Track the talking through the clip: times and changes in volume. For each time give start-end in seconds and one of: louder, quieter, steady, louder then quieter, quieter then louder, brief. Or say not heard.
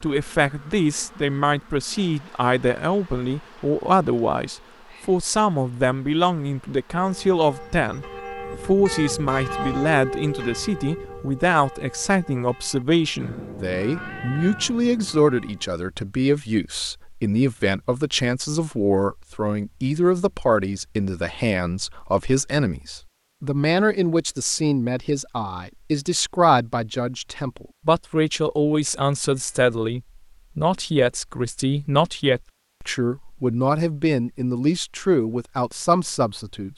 0.0-36.7 steady.